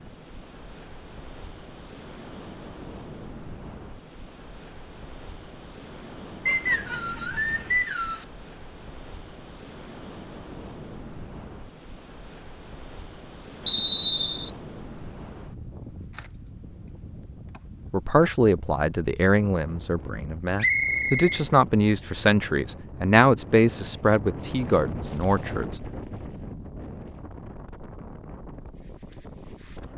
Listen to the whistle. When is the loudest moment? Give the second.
14 s.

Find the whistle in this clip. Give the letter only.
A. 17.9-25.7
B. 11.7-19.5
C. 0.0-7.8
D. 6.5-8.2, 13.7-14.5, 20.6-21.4
D.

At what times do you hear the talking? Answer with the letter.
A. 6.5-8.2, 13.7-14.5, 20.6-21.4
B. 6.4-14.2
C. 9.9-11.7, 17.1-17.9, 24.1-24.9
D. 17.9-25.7
D.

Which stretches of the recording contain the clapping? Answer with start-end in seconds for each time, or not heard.
not heard.